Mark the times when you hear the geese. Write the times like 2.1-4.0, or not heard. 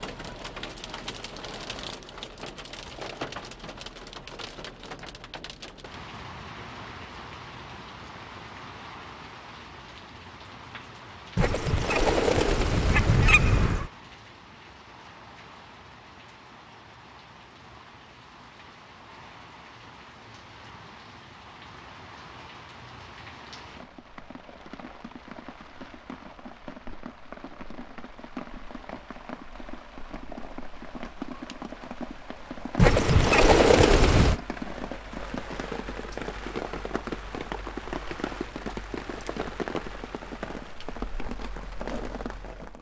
11.3-13.9, 32.8-34.4.